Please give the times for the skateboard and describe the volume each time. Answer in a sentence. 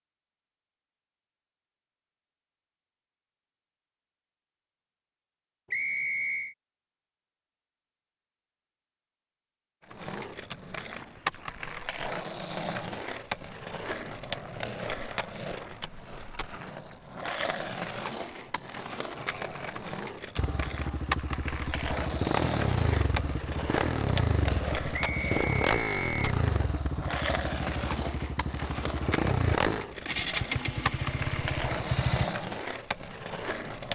The skateboard can be heard from 9.8 to 33.8 s, at a steady volume.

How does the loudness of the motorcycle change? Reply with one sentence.
The loudness of the motorcycle stays about the same.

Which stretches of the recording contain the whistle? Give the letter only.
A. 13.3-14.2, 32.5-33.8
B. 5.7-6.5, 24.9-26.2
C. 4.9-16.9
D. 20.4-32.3
B.